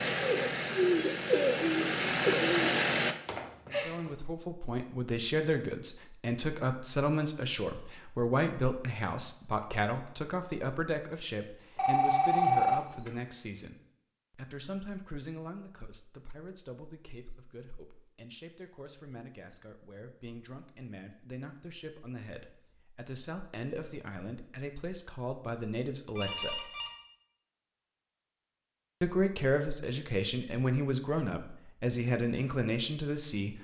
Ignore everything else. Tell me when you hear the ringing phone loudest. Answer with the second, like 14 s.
13 s.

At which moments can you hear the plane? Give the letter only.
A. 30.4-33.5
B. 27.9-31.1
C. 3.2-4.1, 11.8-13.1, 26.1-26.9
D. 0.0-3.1
D.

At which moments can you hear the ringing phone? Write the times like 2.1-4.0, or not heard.
3.2-4.1, 11.8-13.1, 26.1-26.9.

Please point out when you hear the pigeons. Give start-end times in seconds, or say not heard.
0.2-2.8.